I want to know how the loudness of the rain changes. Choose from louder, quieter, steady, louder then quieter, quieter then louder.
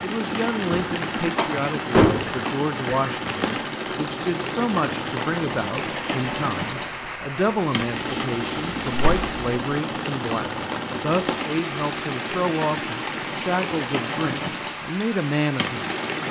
steady.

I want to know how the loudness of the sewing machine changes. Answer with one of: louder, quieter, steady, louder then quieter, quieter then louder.
steady.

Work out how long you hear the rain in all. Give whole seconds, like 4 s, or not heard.
16 s.